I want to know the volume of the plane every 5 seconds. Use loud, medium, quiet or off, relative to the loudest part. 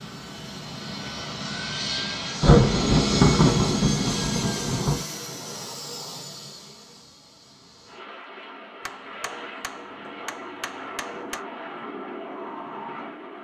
loud, medium, medium.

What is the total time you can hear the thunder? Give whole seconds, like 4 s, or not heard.
3 s.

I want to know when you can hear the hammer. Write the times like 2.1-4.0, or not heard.
8.8-11.4.